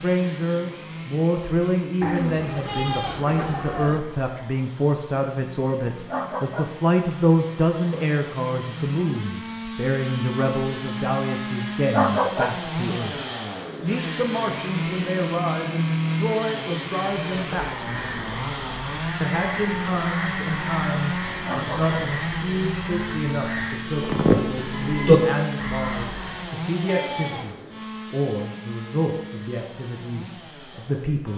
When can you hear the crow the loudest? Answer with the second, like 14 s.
25 s.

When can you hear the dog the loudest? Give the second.
12 s.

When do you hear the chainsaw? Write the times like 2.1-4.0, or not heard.
0.0-31.3.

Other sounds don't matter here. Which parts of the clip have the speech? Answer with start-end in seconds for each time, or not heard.
0.0-13.2, 13.8-17.7, 19.2-31.3.